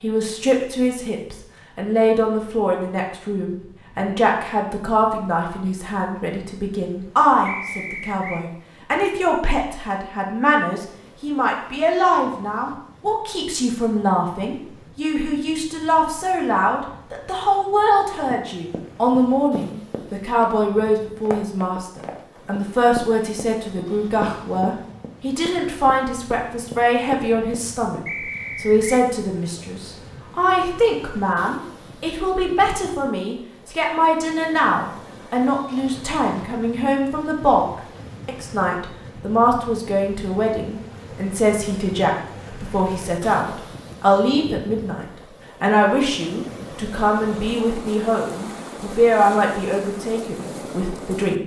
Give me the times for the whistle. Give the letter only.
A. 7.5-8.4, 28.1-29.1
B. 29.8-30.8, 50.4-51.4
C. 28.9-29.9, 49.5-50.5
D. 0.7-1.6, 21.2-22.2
A.